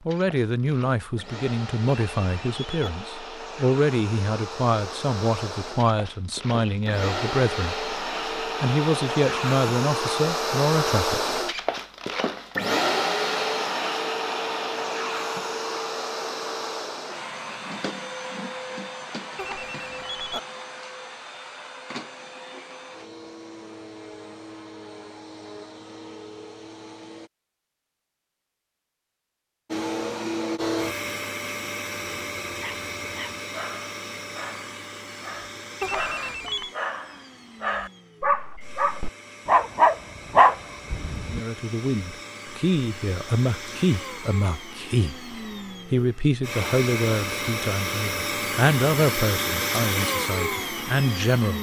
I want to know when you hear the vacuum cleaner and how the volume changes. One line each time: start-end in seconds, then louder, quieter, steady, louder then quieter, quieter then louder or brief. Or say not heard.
0.0-27.3 louder then quieter
29.7-51.5 quieter then louder.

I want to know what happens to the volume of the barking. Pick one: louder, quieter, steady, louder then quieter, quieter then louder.
louder.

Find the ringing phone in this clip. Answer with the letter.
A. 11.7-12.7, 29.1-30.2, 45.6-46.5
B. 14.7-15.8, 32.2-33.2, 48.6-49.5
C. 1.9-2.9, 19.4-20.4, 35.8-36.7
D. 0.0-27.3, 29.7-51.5
C.